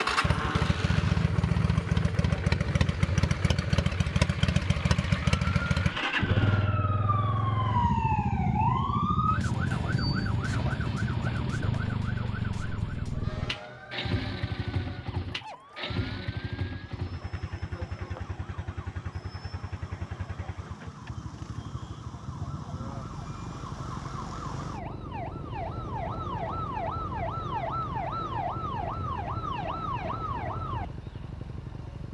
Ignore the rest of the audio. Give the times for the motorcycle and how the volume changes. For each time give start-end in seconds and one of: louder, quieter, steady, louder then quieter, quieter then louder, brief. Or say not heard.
0.0-32.0 quieter.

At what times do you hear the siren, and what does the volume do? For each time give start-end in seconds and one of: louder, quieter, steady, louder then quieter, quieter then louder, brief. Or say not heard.
5.2-32.0 quieter then louder.